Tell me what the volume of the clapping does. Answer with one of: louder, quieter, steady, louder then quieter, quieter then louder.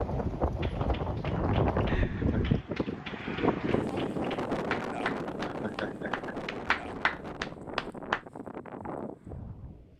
louder.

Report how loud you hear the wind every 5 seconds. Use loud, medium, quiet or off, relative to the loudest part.
loud, medium.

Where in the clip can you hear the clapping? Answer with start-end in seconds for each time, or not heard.
0.6-8.2.